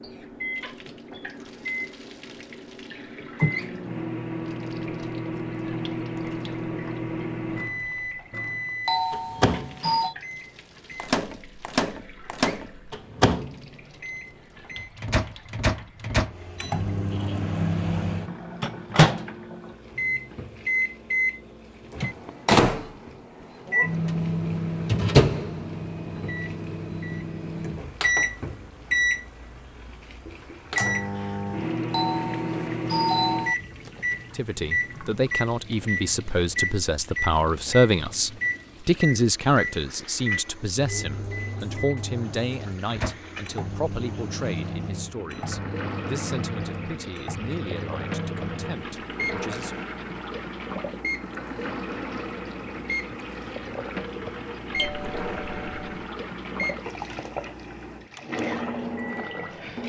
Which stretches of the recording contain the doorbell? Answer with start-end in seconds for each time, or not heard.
8.8-10.2, 31.9-33.5, 54.8-56.0.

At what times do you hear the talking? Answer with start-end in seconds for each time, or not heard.
34.3-49.8.